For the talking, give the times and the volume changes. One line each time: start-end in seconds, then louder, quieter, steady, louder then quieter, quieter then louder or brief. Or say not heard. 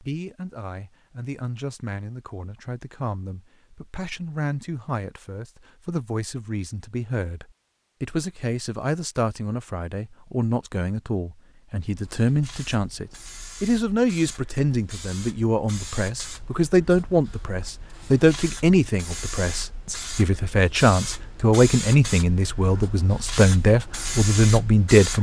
0.0-25.1 louder.